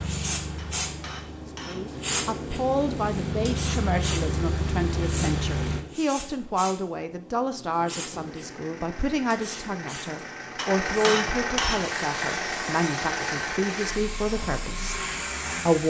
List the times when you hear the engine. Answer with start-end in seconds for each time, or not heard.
0.0-5.8, 8.1-15.8.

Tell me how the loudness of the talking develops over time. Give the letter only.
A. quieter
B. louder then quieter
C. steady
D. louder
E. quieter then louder
C.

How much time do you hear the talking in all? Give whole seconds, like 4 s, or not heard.
14 s.